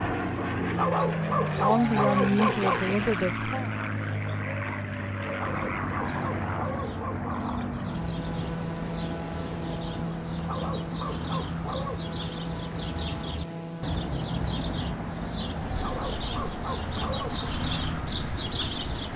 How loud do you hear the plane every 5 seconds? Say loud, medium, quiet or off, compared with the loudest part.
loud, loud, medium, medium.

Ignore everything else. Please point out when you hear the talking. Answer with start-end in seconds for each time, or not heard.
1.5-3.7.